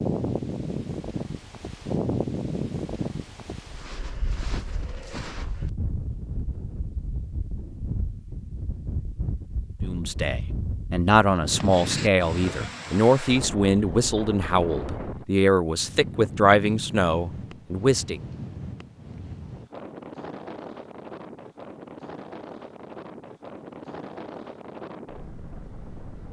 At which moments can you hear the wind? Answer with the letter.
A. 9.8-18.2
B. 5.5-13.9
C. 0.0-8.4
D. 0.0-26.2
D.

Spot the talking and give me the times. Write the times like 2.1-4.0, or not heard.
9.8-18.2.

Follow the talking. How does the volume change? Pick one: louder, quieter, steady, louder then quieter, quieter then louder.
steady.